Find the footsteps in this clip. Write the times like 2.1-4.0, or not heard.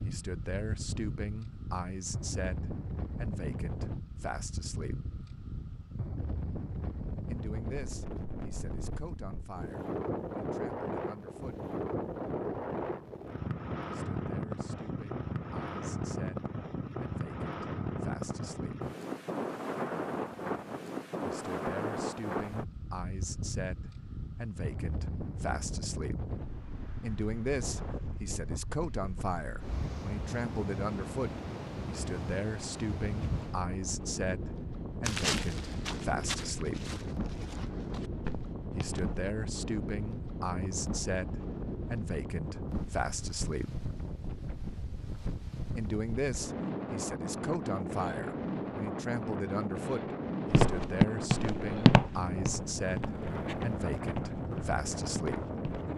35.0-39.3, 50.5-55.9.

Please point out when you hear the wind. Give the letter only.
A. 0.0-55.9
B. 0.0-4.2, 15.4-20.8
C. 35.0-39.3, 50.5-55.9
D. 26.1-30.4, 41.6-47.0
A.